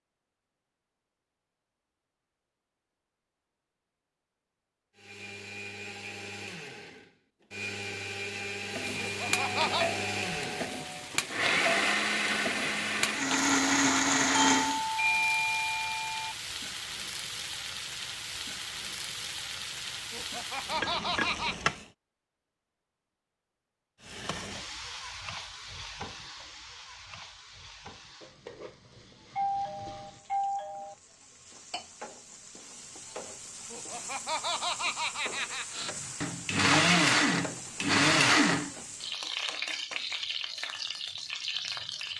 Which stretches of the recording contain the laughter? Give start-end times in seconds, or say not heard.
8.9-9.8, 20.1-21.6, 33.7-35.8.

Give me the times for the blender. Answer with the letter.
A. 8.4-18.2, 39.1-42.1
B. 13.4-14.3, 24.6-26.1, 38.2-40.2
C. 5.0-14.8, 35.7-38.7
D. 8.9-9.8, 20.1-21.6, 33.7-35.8
C.